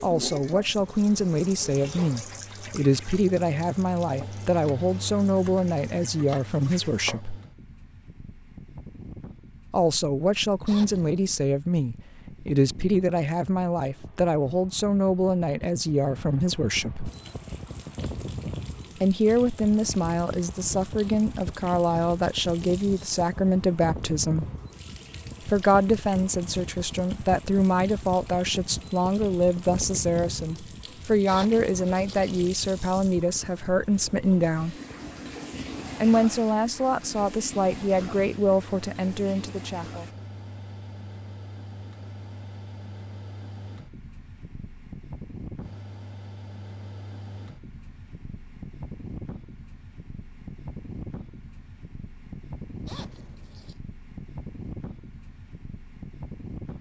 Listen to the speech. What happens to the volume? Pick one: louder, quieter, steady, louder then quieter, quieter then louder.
steady.